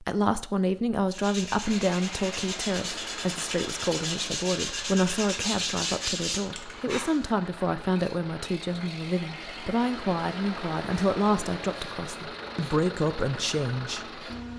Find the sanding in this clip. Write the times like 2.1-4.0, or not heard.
1.1-7.3.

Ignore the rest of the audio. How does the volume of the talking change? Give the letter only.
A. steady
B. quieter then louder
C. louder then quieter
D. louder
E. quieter
A.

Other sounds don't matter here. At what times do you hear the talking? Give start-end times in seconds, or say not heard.
0.0-14.2.